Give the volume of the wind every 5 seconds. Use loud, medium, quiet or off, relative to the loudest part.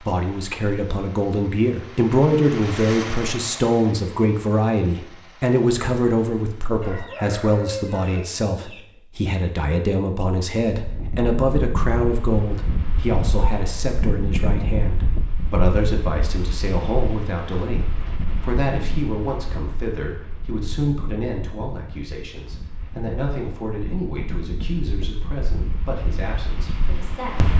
off, off, loud, medium, medium, loud.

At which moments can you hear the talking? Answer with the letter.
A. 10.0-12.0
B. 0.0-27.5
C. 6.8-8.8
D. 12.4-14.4
B.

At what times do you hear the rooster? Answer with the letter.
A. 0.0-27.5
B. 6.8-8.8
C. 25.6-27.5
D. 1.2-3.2
B.